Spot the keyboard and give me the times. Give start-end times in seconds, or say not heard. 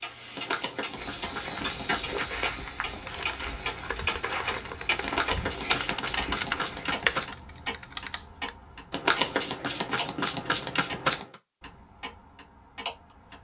2.9-8.5.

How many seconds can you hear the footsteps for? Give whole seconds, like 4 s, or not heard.
6 s.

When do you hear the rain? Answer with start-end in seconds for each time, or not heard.
not heard.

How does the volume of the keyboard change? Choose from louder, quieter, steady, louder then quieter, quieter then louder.
louder then quieter.